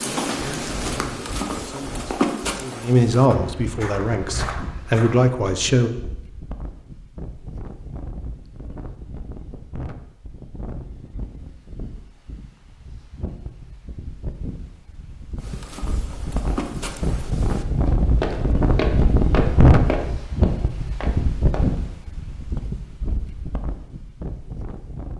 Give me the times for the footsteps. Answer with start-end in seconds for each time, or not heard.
0.0-5.3, 15.4-21.8.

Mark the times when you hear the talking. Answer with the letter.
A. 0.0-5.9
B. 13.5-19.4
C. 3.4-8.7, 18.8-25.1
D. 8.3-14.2
A.